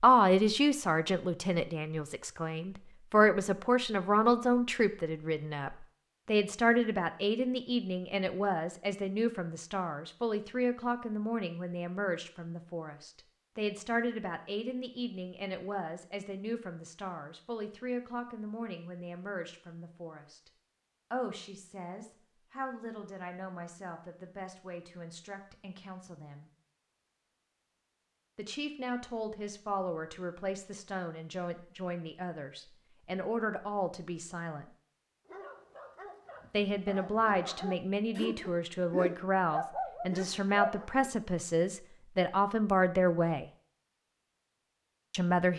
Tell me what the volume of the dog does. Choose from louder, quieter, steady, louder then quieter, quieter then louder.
louder.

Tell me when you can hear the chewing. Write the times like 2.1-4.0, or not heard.
not heard.